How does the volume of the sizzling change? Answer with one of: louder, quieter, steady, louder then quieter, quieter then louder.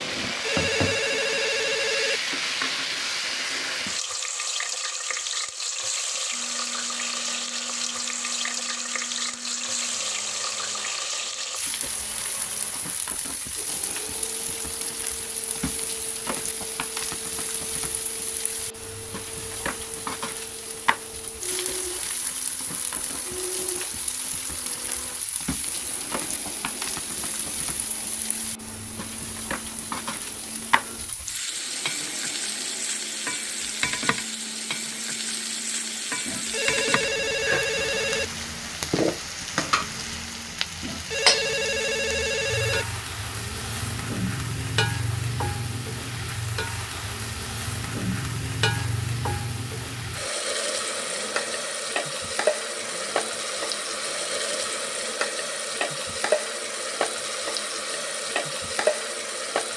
quieter then louder.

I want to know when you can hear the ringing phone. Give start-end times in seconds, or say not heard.
0.1-2.2, 36.2-38.2, 40.8-42.9.